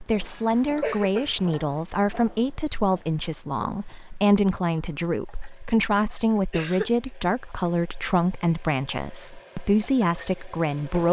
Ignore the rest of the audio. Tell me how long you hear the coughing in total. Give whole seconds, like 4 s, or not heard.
2 s.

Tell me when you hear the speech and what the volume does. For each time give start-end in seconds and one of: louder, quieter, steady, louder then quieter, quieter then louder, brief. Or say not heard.
0.0-11.0 steady.